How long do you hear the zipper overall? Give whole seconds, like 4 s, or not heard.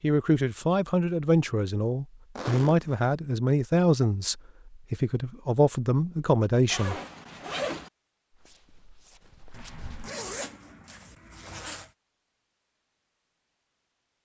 4 s.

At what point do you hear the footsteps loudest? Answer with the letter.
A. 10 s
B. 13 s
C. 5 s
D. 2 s
A.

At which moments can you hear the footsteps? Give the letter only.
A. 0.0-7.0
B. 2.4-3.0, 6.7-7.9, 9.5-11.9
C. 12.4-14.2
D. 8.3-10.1
D.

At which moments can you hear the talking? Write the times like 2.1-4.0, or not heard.
0.0-7.0.